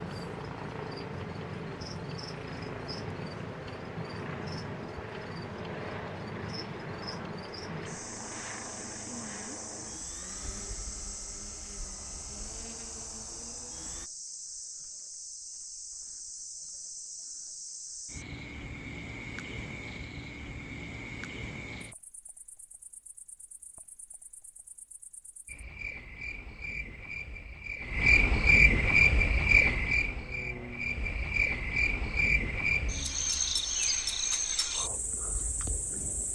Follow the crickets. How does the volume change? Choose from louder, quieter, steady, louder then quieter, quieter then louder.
louder.